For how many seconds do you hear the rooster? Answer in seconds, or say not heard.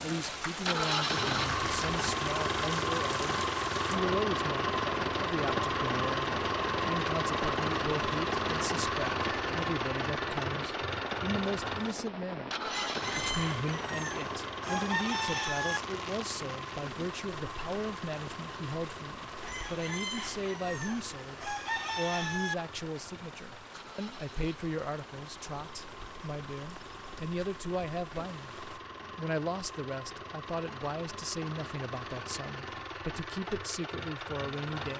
6 s.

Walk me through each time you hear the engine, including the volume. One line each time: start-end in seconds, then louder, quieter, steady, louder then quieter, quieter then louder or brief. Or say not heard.
0.0-34.9 quieter then louder.